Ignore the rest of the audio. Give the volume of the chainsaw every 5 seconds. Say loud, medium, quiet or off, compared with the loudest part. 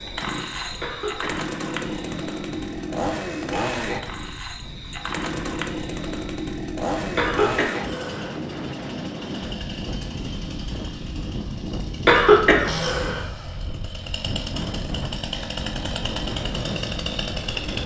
loud, loud, medium, loud.